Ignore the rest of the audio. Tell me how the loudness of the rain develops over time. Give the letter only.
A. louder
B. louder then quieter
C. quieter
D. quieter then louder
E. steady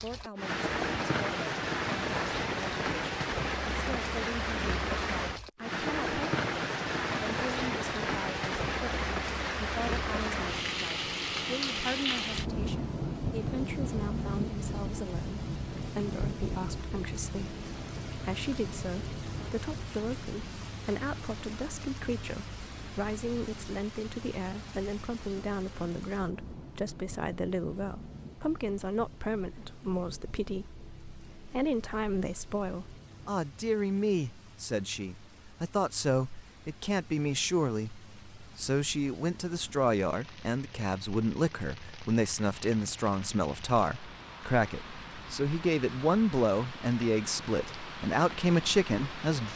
D.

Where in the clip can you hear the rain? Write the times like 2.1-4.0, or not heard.
0.0-49.5.